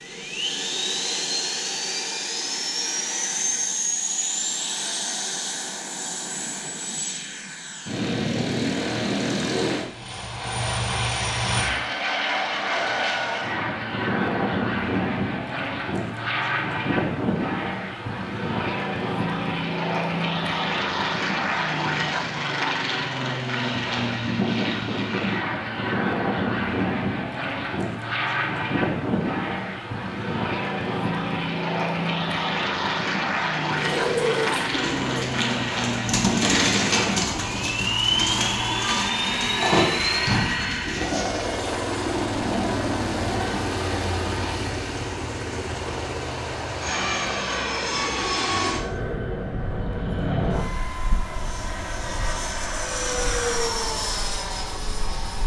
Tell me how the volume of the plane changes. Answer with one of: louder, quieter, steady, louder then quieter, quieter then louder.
steady.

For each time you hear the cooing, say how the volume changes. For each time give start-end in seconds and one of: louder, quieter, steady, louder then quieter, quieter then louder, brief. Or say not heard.
33.7-41.5 steady.